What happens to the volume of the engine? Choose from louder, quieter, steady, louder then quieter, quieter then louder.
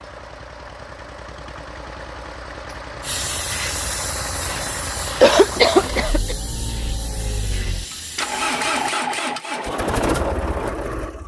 louder.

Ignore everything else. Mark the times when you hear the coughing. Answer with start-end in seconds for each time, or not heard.
5.2-6.3.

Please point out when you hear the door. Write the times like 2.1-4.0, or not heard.
not heard.